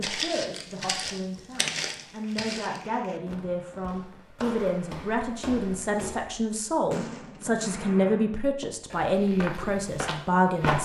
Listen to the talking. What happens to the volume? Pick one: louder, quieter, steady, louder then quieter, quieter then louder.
louder.